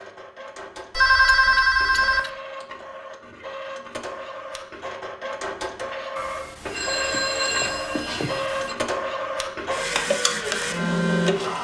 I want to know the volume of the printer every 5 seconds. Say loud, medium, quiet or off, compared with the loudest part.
quiet, medium, loud.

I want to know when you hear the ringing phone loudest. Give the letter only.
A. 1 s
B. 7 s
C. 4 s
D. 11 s
A.